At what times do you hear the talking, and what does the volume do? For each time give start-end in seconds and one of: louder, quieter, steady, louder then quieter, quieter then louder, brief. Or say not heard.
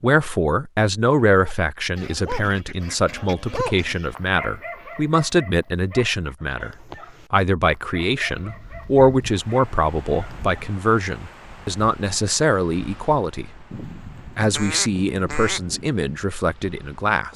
0.0-13.7 steady
14.3-17.3 brief.